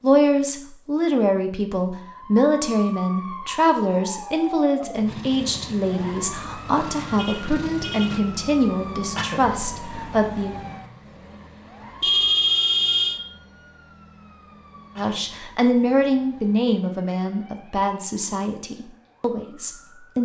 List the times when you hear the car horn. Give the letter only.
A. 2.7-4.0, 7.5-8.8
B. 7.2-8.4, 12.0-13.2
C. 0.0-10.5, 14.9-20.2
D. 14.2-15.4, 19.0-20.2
B.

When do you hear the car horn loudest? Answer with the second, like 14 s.
12 s.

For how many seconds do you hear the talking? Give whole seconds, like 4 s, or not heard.
16 s.